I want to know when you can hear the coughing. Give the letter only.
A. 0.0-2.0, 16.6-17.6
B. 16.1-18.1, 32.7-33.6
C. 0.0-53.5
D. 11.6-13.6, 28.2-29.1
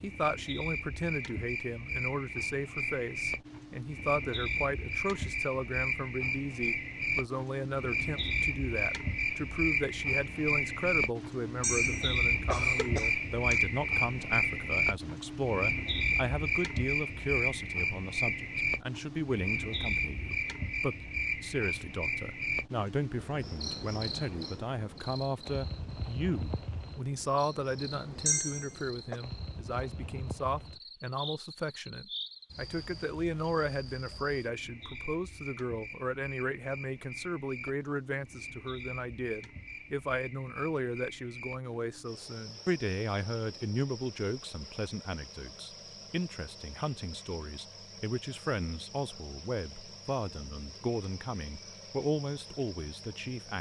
D.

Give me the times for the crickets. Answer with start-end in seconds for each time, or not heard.
0.0-53.5.